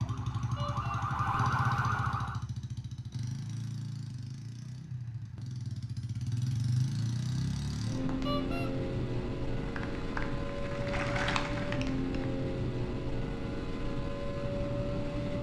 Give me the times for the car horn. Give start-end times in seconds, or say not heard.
0.6-1.0, 8.2-8.7.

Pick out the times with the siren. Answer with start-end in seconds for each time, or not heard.
0.0-2.5.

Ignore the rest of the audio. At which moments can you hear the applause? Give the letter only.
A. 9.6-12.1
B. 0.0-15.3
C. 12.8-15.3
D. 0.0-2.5
A.